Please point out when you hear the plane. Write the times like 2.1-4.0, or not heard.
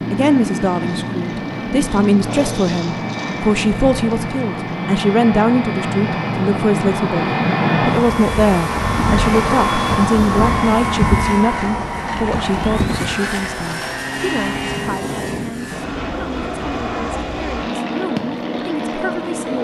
0.0-19.5.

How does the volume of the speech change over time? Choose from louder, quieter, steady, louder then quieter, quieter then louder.
quieter.